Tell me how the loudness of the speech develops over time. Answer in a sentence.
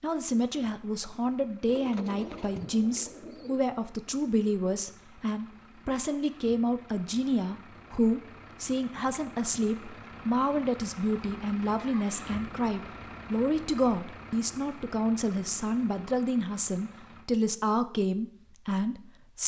The loudness of the speech stays about the same.